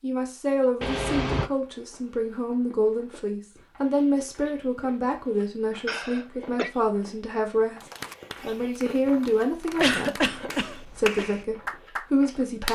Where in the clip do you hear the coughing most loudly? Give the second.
10 s.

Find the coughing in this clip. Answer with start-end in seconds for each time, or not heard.
0.8-1.5, 5.8-6.7, 9.8-11.2.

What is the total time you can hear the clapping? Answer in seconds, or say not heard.
4 s.